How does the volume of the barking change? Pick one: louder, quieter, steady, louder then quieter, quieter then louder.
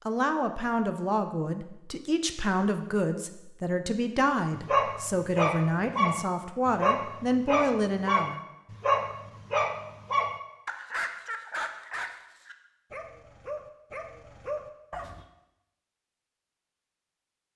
quieter.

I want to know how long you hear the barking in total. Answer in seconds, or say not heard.
11 s.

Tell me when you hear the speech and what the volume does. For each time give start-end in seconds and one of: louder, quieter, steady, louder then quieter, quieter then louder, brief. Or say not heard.
0.1-8.4 steady.